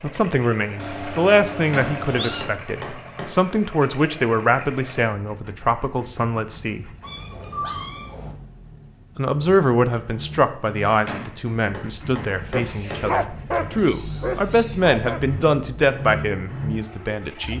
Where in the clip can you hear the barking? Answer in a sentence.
You can hear the barking from 12.5 to 15.3 s.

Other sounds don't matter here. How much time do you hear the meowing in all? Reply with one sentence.
The meowing can be heard for 4 seconds in total.